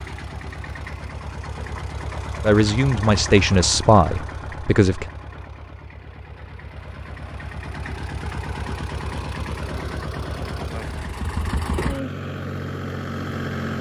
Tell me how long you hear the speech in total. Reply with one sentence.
The speech can be heard for 3 seconds in total.